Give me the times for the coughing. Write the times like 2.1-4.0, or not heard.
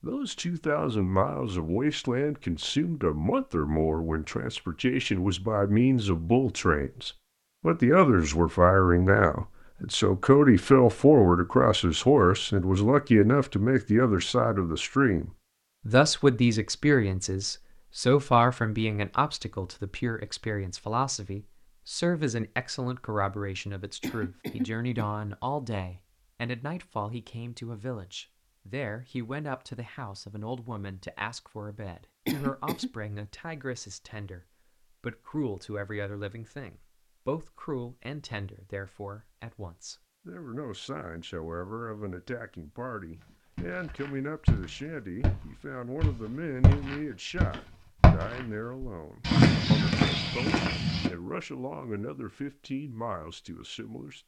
24.0-25.1, 32.2-32.9.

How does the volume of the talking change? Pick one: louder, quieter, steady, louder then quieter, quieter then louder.
quieter.